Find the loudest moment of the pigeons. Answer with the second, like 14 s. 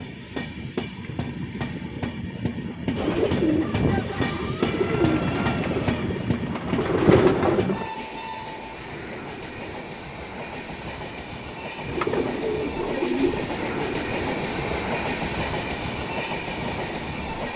7 s.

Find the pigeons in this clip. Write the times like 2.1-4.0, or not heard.
3.0-7.9, 11.8-14.8.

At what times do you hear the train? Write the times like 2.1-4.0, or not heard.
0.0-17.5.